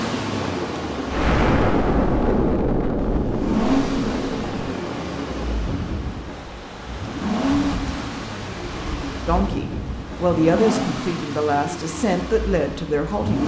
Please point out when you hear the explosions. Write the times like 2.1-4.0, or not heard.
1.1-4.6.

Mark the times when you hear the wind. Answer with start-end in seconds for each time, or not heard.
0.0-10.6.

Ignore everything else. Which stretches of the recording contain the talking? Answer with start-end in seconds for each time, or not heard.
9.2-13.4.